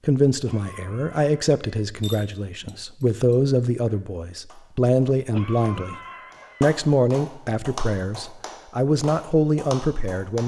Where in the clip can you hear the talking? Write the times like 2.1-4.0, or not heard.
0.1-6.0, 6.6-10.4.